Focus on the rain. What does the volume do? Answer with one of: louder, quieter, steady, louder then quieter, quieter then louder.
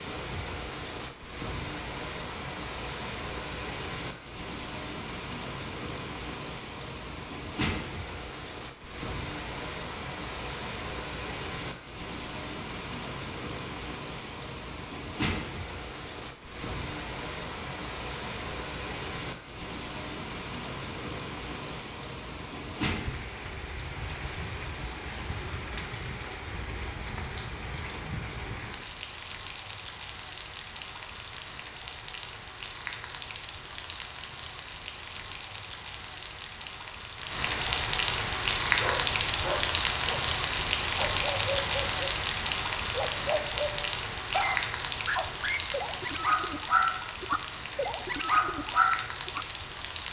louder.